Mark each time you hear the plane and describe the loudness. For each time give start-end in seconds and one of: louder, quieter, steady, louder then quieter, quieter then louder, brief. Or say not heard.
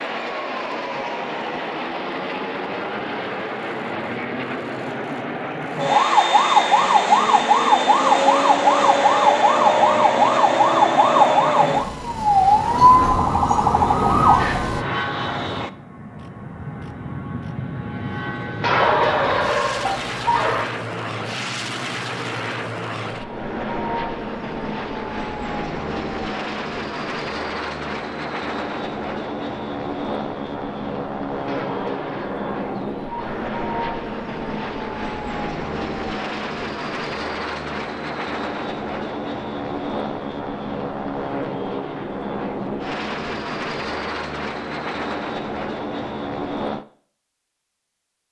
0.0-46.9 steady.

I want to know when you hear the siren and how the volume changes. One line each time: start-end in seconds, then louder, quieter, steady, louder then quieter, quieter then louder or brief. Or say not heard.
5.8-14.8 steady.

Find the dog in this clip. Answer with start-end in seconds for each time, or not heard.
18.6-20.6, 31.4-33.5.